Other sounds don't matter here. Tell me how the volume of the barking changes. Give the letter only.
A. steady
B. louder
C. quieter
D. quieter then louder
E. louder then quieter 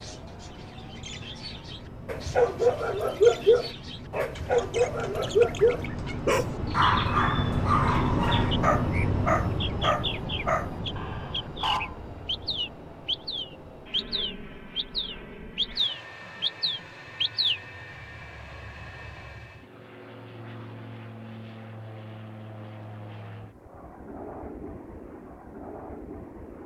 C.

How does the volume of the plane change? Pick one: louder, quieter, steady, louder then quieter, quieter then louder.
louder then quieter.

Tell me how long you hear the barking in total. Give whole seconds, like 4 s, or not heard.
10 s.